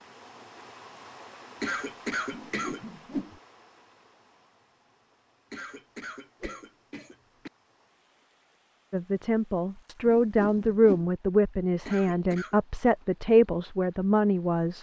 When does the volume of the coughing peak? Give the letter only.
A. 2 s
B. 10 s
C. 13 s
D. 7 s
A.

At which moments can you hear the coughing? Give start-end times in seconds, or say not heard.
1.6-2.8, 5.5-7.5, 11.8-12.6.